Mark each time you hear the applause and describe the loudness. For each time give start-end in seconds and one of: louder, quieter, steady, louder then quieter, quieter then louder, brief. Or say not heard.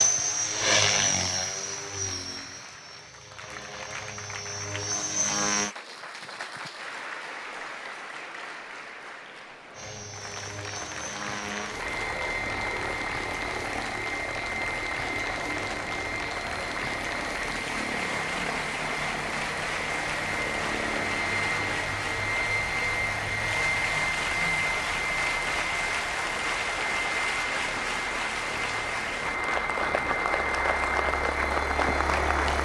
0.0-32.6 louder.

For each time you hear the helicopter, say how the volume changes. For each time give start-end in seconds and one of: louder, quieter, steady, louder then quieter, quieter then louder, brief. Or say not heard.
0.0-5.8 quieter then louder
9.7-32.6 steady.